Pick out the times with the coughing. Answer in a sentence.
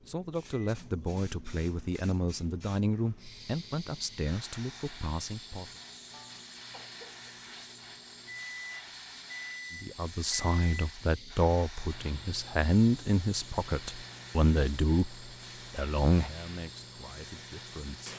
The coughing can be heard from 6.1 to 7.4 s.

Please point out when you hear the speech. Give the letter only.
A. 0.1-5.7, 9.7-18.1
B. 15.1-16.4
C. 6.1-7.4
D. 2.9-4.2
A.